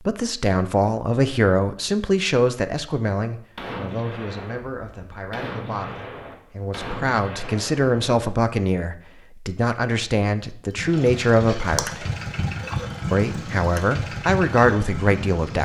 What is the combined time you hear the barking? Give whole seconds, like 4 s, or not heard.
not heard.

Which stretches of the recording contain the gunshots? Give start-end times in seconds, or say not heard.
3.5-8.2.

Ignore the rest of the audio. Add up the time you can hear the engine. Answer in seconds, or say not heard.
5 s.